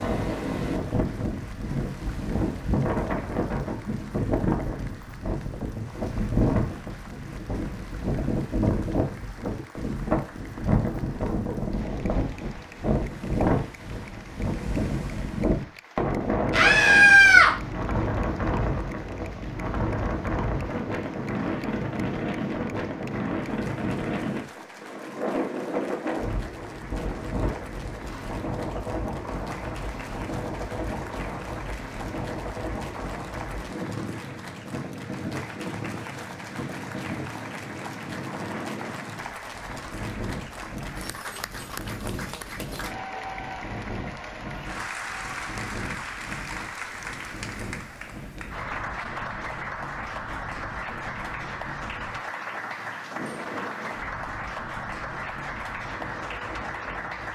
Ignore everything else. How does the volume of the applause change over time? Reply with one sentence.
The volume of the applause goes up.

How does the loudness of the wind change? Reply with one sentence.
The loudness of the wind goes down.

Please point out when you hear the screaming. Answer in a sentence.
You can hear the screaming from 16.5 to 17.5 s.